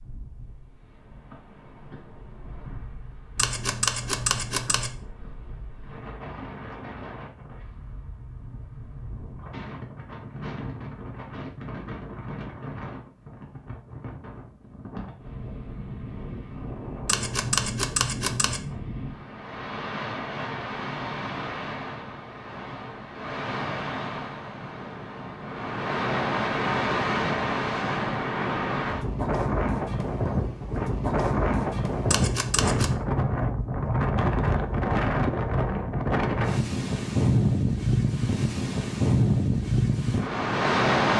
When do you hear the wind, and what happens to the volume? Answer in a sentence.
The wind can be heard from 0.0 to 41.1 s, getting louder.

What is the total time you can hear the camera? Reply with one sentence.
The camera can be heard for 4 seconds in total.